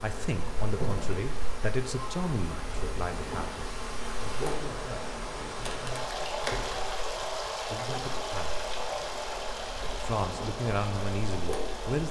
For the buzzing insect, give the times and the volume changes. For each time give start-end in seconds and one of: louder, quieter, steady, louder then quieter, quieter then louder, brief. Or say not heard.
0.0-12.0 quieter then louder.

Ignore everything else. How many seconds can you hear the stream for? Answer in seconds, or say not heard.
12 s.